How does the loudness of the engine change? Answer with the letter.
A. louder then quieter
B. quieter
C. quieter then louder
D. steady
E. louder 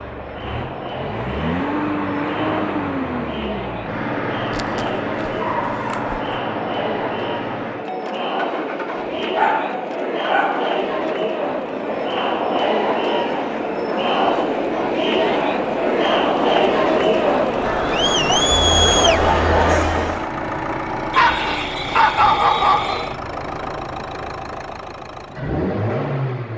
C.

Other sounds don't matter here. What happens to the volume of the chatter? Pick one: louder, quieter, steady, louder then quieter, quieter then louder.
louder.